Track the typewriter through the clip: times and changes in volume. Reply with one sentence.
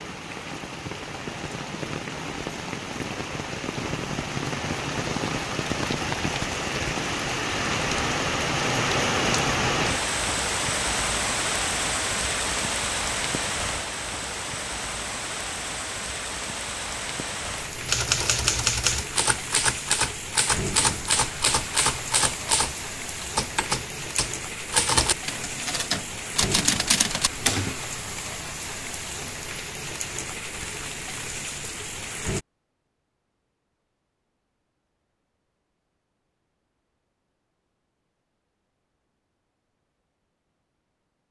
You can hear the typewriter from 17.8 to 27.9 s, at a steady volume.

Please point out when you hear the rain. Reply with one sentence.
The rain can be heard from 0.0 to 32.5 s.